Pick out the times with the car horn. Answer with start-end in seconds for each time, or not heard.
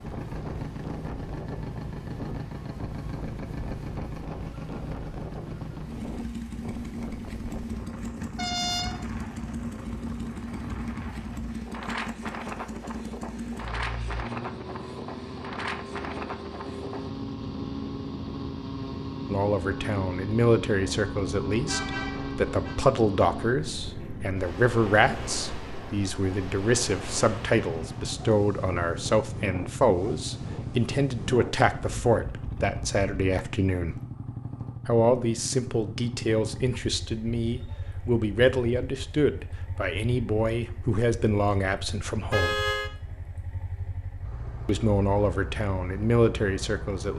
8.3-9.1, 21.6-22.8, 42.3-42.9.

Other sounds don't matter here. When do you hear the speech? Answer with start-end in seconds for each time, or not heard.
19.3-34.0, 34.9-42.6, 44.6-47.1.